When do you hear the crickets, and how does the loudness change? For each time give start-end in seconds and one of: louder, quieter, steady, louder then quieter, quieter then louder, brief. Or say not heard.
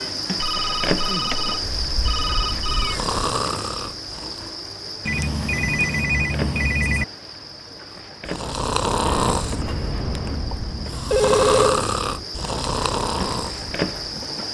0.0-14.4 quieter then louder.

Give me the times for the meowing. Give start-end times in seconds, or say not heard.
1.6-3.2, 9.1-10.5.